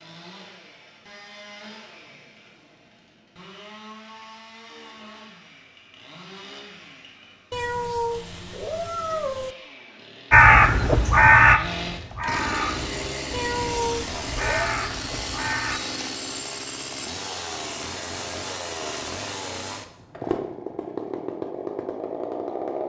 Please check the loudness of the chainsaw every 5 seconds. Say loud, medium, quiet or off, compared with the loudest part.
quiet, quiet, loud, loud, loud.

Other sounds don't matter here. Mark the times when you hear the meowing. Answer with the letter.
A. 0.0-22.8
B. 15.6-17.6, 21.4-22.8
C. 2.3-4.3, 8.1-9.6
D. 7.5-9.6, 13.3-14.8
D.